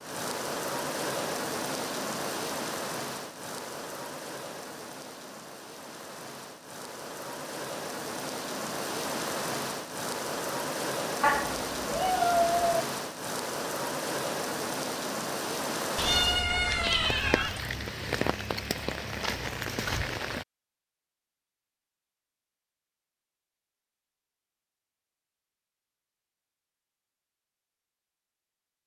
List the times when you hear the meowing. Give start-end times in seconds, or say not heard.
11.2-12.8, 15.9-17.6.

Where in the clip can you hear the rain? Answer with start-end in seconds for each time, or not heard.
0.0-20.4.